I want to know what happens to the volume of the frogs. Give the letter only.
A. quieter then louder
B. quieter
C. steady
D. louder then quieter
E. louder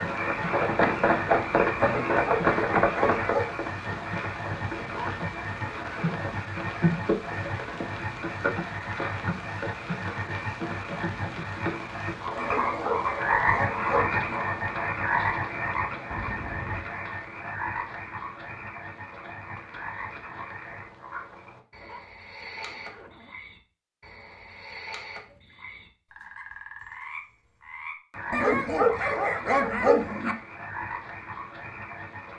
B.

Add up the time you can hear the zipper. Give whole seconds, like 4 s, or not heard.
4 s.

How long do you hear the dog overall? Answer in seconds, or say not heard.
6 s.